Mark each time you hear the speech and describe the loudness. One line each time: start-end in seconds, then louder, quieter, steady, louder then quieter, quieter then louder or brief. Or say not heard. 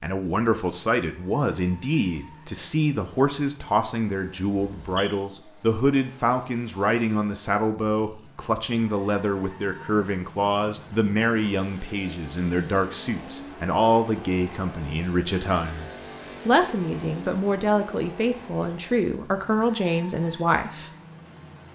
0.0-20.9 steady.